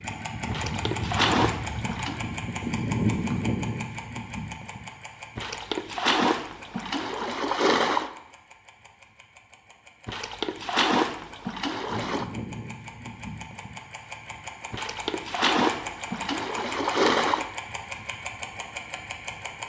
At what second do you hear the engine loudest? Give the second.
3 s.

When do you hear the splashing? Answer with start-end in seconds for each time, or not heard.
0.5-2.2, 5.3-8.1, 10.1-12.2, 14.7-17.5.